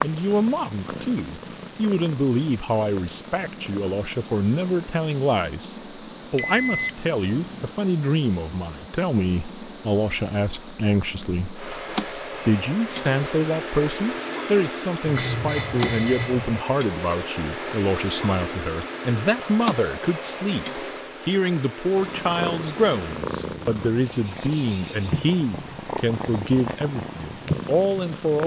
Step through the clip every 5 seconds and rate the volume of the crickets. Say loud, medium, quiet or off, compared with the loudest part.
medium, loud, loud, loud, medium, loud.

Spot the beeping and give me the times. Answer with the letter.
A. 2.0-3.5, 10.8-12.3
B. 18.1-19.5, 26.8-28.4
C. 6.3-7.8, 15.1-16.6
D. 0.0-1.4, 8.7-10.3
C.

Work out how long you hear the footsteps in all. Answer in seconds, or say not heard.
not heard.